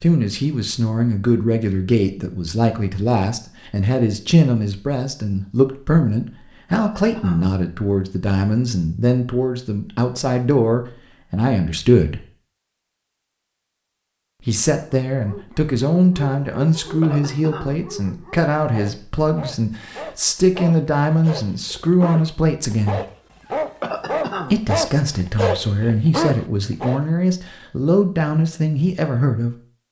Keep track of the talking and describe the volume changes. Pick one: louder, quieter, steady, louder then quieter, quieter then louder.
steady.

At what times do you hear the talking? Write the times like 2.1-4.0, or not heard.
0.0-12.2, 14.4-23.0, 24.5-29.6.